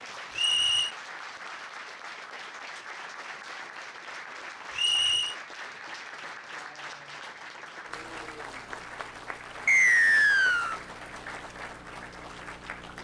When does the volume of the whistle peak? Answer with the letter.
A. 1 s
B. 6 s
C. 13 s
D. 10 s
D.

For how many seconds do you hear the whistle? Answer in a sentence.
You can hear the whistle for 2 seconds altogether.